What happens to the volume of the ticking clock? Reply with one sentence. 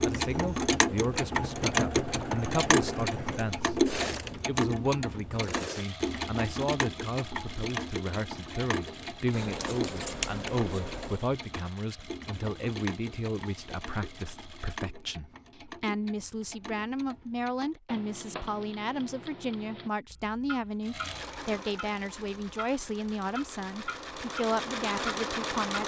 The volume of the ticking clock goes down.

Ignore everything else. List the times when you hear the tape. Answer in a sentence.
The tape can't be heard in this clip.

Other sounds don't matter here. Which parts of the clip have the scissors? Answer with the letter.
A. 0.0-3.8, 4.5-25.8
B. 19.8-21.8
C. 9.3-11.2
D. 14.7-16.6
C.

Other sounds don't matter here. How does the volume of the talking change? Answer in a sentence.
The loudness of the talking stays about the same.